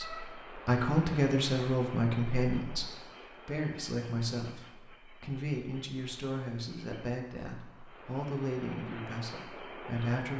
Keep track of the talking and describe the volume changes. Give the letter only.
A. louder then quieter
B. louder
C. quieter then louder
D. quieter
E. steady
D.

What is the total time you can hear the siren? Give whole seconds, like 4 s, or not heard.
not heard.